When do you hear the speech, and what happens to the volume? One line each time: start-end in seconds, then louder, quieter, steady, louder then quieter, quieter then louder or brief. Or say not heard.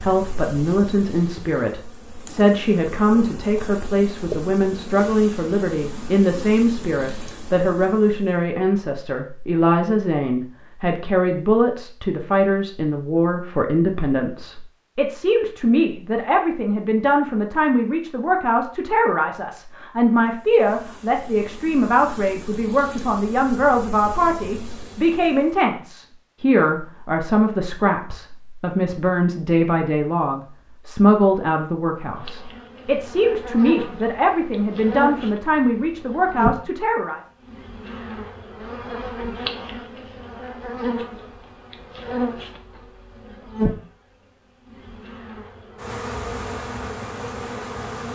0.0-37.2 steady.